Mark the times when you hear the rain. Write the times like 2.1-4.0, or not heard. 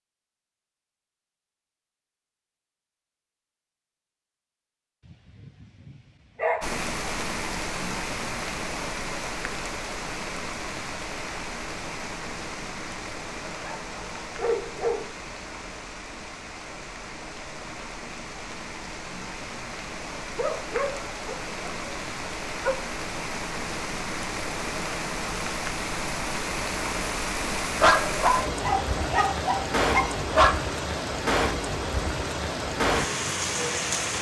6.6-34.1.